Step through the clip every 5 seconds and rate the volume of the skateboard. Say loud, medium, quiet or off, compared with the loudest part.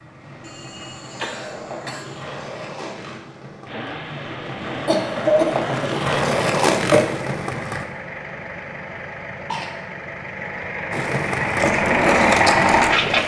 quiet, loud, loud.